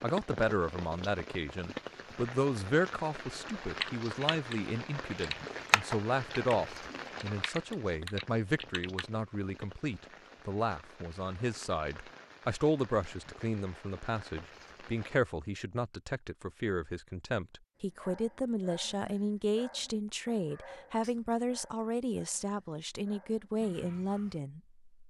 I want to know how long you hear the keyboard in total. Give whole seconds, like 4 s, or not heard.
5 s.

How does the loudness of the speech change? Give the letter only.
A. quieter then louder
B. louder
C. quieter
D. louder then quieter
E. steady
E.